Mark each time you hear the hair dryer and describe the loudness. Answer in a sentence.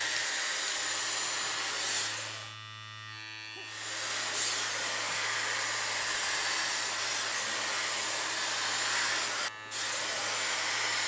The hair dryer can be heard briefly from 0.0 to 2.5 s; and from 3.6 to 11.0 s, at a steady volume.